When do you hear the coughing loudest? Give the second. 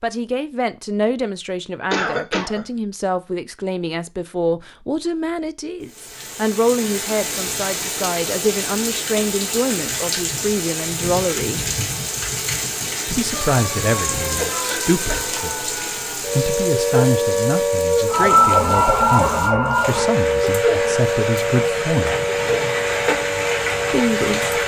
2 s.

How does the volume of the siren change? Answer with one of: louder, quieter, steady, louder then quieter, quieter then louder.
louder then quieter.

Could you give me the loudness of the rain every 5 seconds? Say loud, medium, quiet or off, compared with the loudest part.
off, loud, loud, medium, loud.